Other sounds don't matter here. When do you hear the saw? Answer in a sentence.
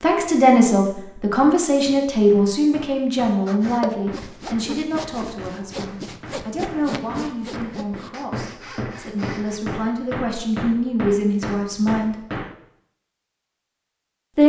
The saw can be heard from 3.5 to 9.6 s.